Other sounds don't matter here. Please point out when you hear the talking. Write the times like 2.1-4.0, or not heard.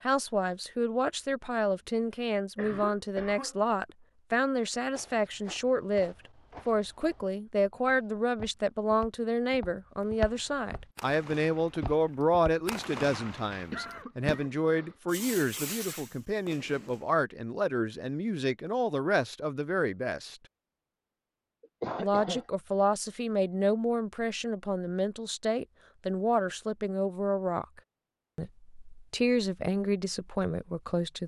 0.0-20.4, 22.0-27.6, 28.4-31.2.